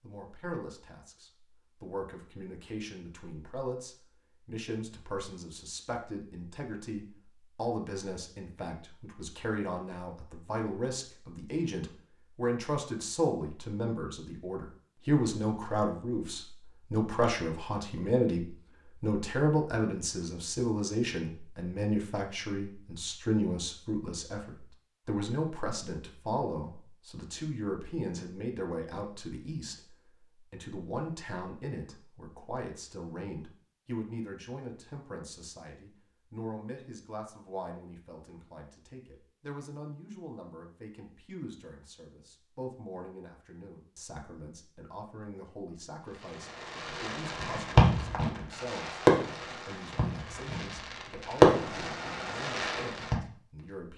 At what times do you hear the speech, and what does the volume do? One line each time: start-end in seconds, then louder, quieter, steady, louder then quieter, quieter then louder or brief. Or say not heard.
0.0-53.9 louder then quieter.